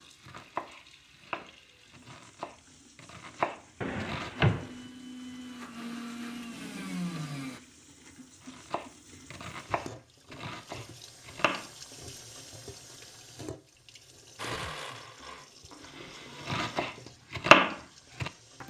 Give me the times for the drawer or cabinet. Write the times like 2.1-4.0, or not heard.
3.8-4.7.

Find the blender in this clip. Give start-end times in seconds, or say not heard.
4.5-7.6, 14.3-16.9.